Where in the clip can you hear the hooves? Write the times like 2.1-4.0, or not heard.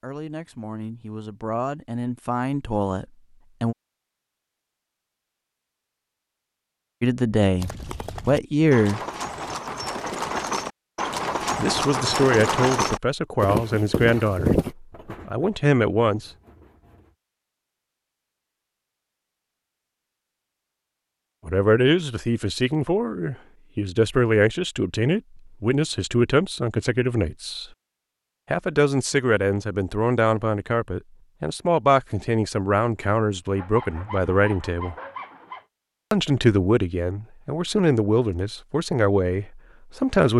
7.5-14.8.